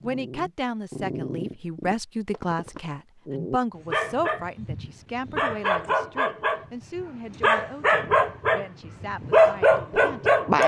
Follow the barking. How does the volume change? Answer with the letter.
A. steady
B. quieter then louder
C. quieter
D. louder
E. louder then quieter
D.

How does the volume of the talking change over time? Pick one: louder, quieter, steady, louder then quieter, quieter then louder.
quieter.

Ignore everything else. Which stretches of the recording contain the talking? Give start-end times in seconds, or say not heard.
0.0-10.4.